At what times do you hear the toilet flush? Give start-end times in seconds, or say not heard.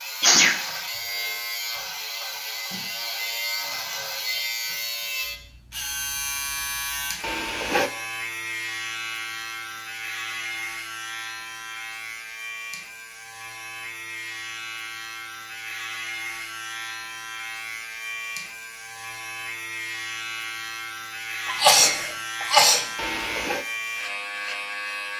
7.2-7.9, 22.9-23.6.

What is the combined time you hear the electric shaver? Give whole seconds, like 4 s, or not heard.
25 s.